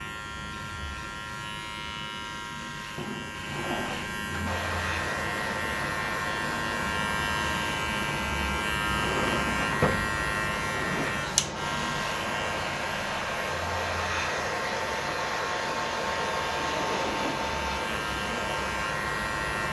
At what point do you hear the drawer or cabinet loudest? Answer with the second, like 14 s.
10 s.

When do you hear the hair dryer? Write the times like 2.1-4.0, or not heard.
4.5-19.6.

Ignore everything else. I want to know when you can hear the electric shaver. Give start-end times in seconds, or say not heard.
0.0-19.6.